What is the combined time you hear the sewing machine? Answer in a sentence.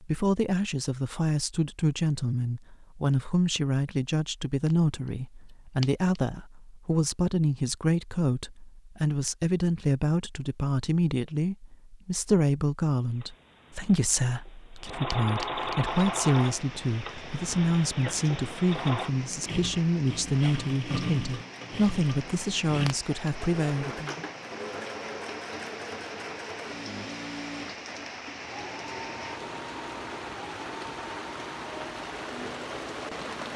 You can hear the sewing machine for 20 seconds altogether.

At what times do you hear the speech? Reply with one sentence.
The speech can be heard from 0.0 to 24.1 s.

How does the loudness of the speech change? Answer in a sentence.
The volume of the speech stays about the same.